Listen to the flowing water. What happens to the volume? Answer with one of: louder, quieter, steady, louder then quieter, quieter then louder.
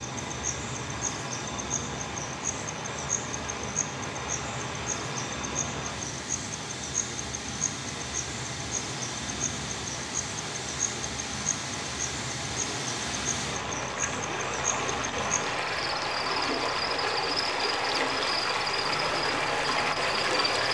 louder.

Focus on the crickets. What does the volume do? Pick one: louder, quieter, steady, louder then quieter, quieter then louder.
steady.